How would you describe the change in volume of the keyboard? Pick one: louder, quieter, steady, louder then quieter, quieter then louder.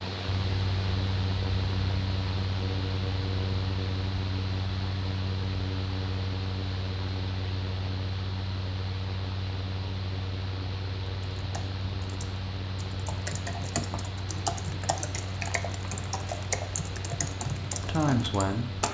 louder.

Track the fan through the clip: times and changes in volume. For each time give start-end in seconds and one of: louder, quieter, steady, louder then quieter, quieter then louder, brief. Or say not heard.
0.0-18.8 quieter.